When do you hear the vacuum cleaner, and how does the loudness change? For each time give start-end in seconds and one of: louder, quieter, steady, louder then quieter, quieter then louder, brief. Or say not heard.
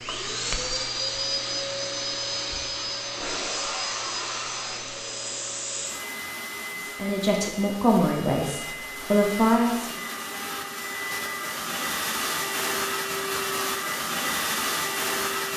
0.0-15.5 quieter then louder.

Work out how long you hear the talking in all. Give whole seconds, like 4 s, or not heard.
3 s.